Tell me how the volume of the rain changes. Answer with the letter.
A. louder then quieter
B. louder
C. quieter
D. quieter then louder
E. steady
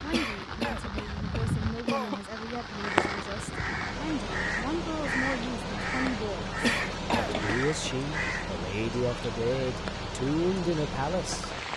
E.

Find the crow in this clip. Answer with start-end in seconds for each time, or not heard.
2.8-8.6.